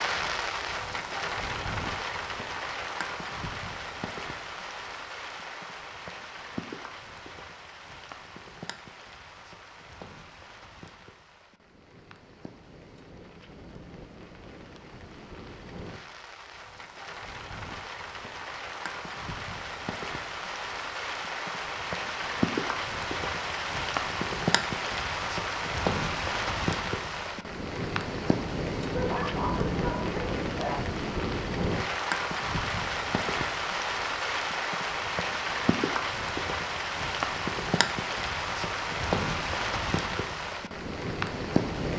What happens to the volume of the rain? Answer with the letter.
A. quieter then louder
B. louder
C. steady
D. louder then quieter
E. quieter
A.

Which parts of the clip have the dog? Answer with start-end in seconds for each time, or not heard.
28.9-30.8.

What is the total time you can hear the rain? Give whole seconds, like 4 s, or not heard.
42 s.